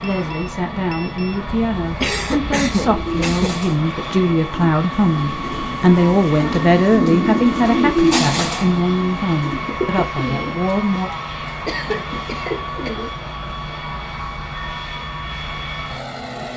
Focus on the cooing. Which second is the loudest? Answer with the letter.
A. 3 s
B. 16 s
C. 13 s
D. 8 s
D.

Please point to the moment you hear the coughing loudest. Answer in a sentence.
The loudest moment of the coughing is at 3 seconds.